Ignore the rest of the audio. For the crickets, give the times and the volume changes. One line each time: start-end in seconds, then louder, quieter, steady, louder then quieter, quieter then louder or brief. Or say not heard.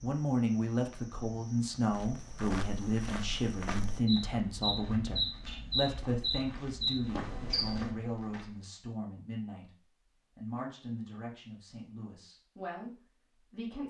0.0-8.0 louder.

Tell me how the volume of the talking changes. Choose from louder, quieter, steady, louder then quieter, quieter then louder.
quieter.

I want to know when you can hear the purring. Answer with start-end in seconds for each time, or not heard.
not heard.